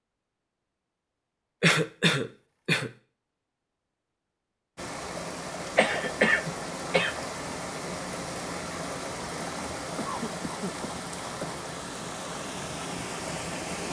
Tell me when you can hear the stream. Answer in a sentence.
The stream can be heard from 4.8 to 13.8 s.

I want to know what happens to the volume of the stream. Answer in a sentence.
The volume of the stream stays about the same.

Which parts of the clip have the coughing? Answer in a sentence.
The coughing can be heard from 1.6 to 2.9 s, from 5.8 to 7.2 s and from 9.9 to 11.7 s.